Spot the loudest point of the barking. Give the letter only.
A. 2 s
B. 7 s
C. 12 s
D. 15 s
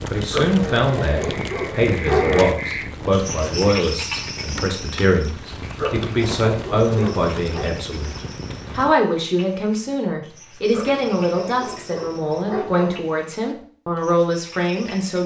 A.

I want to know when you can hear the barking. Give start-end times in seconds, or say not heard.
0.3-2.5, 5.8-7.7, 10.7-13.1.